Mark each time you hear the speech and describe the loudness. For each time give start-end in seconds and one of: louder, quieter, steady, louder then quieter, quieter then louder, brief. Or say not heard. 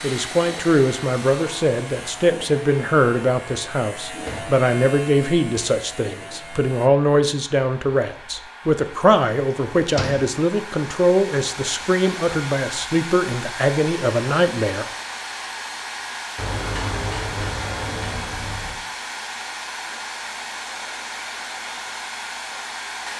0.0-14.8 steady.